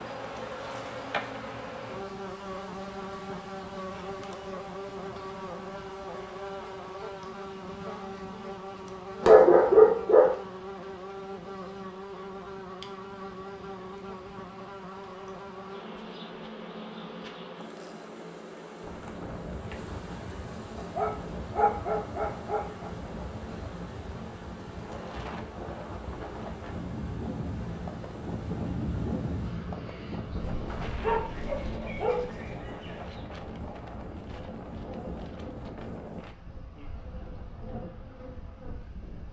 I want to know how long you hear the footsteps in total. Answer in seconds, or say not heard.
not heard.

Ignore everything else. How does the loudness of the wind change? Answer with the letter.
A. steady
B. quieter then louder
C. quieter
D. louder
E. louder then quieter
E.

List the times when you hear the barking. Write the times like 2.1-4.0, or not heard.
9.2-10.3, 20.8-22.9, 30.3-32.3.